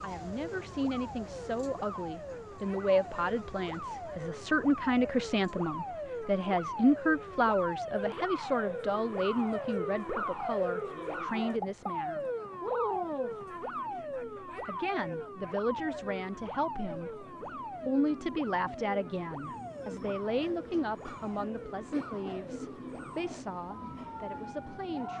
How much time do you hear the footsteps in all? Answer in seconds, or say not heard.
not heard.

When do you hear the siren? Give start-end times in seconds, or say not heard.
0.1-25.1.